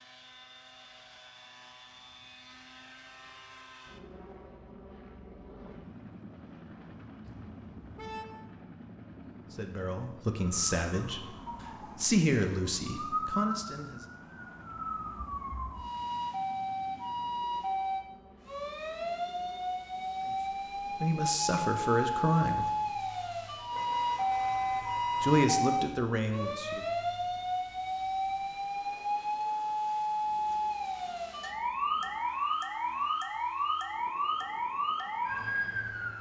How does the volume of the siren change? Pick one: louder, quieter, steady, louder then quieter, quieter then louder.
louder.